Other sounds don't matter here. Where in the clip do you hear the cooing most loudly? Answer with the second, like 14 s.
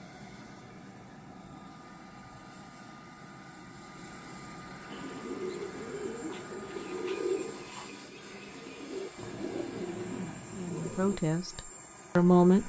7 s.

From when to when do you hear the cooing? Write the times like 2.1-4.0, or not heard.
4.9-11.8.